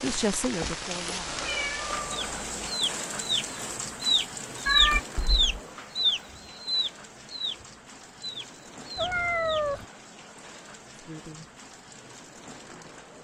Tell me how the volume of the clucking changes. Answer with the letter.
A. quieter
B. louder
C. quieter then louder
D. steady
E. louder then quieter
E.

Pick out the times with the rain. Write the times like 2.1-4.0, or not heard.
0.0-13.2.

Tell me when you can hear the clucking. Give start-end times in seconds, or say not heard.
2.1-9.8.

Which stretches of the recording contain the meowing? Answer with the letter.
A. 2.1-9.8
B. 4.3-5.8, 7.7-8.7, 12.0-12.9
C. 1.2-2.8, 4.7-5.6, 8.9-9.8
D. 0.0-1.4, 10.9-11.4
C.